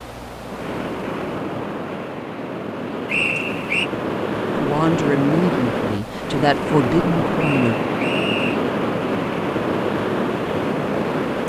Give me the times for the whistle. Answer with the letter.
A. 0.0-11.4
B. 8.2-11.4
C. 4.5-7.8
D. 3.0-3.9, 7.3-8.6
D.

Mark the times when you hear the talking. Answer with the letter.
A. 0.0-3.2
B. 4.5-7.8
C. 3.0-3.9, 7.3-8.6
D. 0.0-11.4
B.